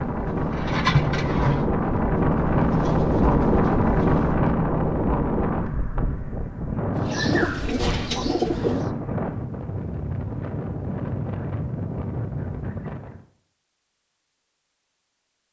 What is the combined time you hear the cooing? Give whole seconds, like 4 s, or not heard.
6 s.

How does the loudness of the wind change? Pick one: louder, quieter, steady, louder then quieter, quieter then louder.
quieter.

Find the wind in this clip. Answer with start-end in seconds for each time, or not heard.
0.0-13.2.